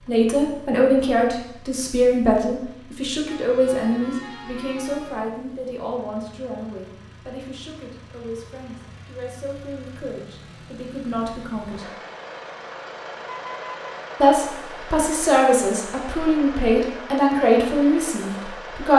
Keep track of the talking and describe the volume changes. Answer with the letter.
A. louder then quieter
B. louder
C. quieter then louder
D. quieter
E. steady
C.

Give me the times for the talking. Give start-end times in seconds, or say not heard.
0.1-11.8, 14.2-18.9.